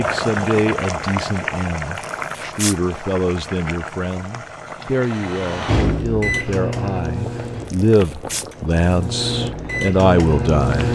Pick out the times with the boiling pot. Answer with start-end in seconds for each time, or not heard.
0.0-10.7.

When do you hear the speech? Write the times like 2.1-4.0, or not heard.
0.0-10.9.